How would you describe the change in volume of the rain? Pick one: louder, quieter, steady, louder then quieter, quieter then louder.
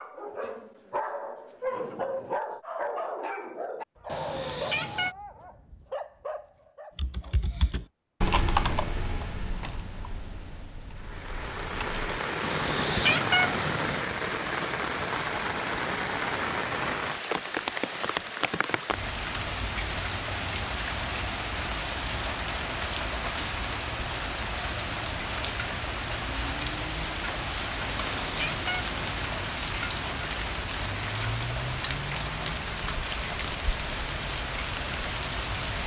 steady.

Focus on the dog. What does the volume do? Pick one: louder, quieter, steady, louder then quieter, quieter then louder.
quieter.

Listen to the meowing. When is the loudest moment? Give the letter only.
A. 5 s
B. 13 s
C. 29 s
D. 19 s
B.